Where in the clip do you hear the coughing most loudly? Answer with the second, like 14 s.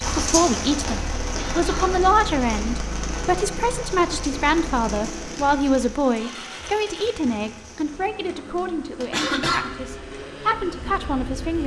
9 s.